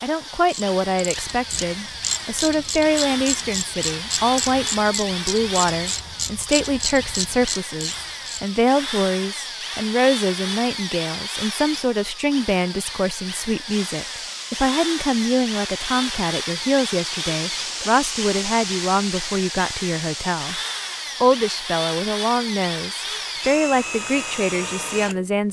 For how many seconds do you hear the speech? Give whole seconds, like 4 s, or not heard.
25 s.